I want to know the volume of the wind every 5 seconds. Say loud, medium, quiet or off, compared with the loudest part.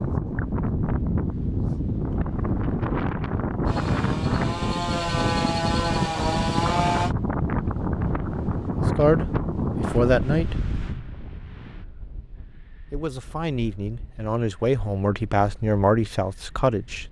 loud, loud, medium, quiet.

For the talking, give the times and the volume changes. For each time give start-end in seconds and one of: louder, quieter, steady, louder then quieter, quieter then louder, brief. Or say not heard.
8.9-10.6 brief
12.9-17.0 louder then quieter.